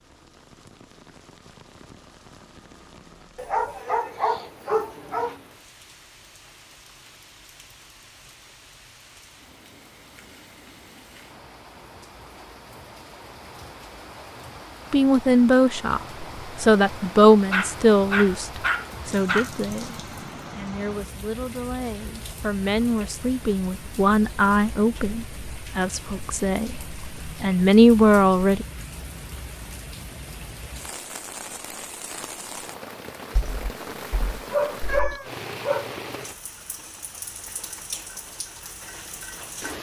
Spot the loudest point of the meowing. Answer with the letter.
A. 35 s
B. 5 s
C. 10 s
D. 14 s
A.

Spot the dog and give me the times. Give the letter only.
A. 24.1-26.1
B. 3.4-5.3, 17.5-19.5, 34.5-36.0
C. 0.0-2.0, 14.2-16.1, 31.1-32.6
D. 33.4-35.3
B.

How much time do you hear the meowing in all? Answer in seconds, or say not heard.
2 s.